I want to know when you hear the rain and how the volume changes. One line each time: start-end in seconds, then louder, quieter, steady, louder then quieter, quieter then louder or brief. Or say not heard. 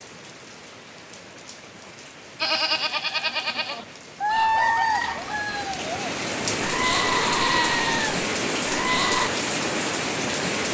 0.0-10.6 louder.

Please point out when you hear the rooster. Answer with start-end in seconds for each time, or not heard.
4.2-5.9.